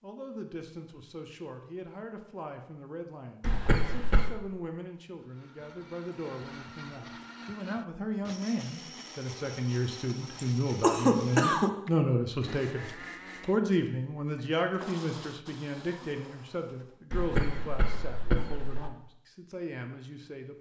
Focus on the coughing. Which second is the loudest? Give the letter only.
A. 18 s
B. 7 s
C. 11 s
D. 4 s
C.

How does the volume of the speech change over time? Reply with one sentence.
The volume of the speech goes up, then down.